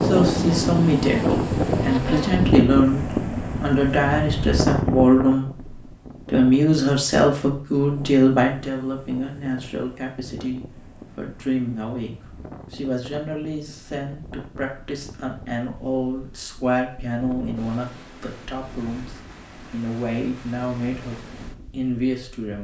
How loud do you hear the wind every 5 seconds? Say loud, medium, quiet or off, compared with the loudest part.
loud, quiet, quiet, quiet, quiet.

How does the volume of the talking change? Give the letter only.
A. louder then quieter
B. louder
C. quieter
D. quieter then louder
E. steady
C.